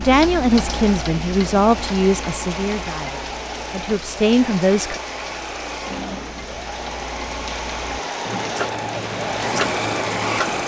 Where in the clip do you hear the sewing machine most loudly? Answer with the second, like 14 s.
10 s.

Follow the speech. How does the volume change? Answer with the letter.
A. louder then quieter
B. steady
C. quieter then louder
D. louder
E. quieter
C.